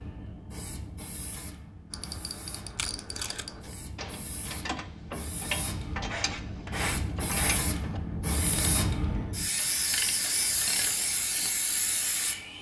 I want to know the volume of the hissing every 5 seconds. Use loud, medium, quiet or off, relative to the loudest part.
quiet, loud, loud.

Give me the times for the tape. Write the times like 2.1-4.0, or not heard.
2.8-3.8.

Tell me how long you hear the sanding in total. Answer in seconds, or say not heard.
2 s.